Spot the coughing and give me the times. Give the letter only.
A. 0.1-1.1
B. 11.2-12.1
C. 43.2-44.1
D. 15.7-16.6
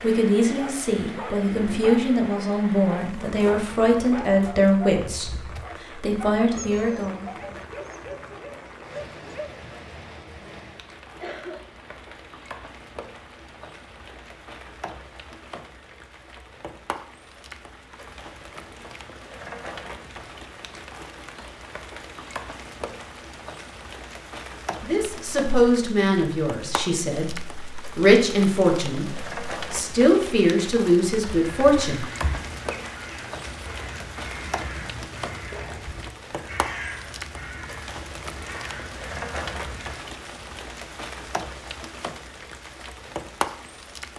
B.